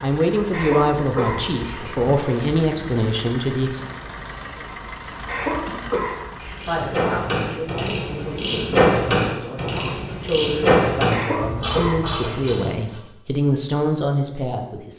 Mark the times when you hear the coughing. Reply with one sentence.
You can hear the coughing from 0.5 to 2.1 s, from 5.2 to 7.0 s and from 11.1 to 12.6 s.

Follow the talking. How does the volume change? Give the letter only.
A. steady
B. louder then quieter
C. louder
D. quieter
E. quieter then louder
E.